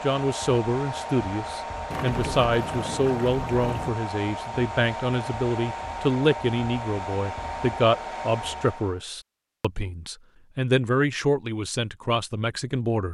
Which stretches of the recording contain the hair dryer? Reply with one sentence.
The hair dryer can be heard from 0.0 to 9.0 s.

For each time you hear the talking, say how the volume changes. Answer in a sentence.
You can hear the talking from 0.0 to 13.0 s, at a steady volume.